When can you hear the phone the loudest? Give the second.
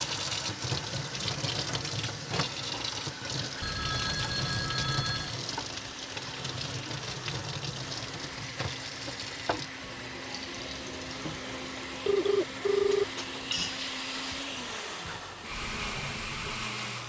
13 s.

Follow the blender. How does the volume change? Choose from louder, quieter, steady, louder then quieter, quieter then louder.
louder.